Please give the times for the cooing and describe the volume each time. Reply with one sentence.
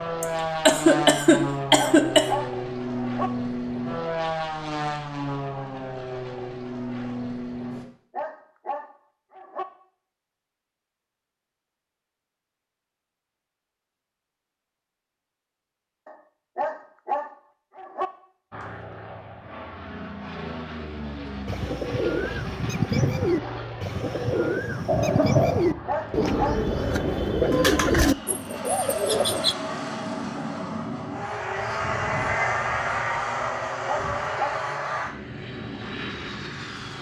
The cooing can be heard from 21.4 to 29.6 s, at a steady volume.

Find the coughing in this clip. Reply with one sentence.
You can hear the coughing from 0.2 to 2.2 s and from 24.9 to 25.6 s.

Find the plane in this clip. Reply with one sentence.
The plane can be heard from 0.0 to 7.8 s and from 18.5 to 36.9 s.